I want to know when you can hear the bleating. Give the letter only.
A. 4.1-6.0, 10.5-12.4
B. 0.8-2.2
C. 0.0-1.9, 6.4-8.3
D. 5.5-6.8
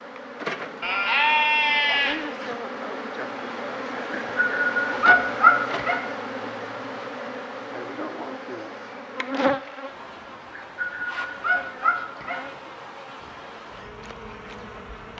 B.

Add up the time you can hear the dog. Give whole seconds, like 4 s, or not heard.
4 s.